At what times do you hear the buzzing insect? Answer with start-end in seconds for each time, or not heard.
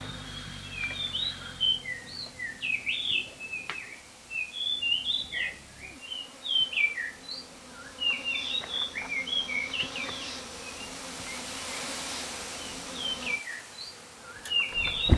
0.0-15.1.